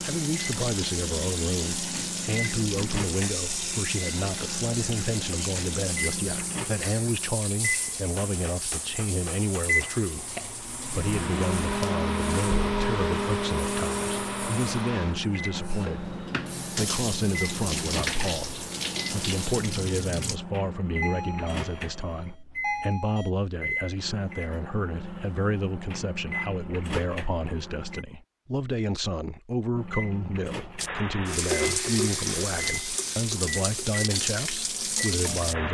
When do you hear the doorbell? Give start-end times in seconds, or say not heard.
21.0-23.3.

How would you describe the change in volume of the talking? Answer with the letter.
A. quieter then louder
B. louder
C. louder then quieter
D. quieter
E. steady
E.